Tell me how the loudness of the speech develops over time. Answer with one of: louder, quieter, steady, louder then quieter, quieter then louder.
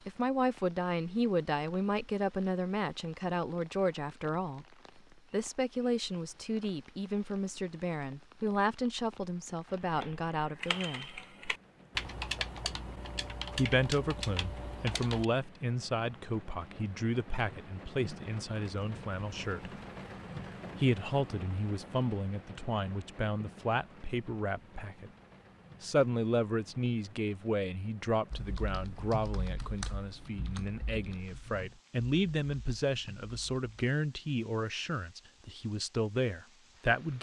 steady.